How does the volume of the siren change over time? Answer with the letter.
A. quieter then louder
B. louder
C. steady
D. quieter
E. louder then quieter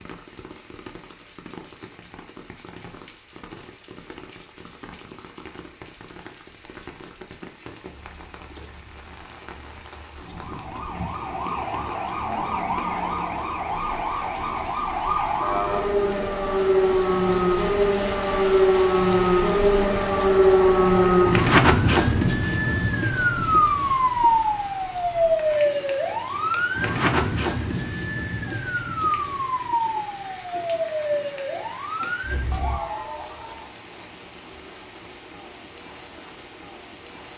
E.